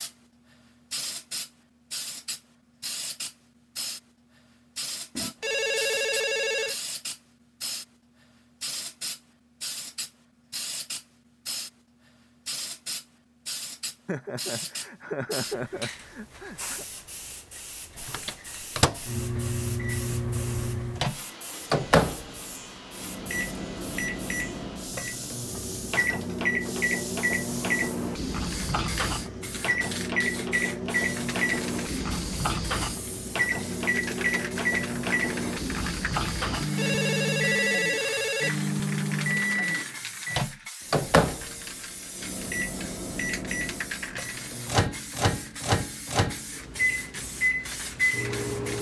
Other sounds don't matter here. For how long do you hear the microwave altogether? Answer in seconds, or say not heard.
31 s.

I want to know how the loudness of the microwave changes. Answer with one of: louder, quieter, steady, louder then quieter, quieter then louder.
steady.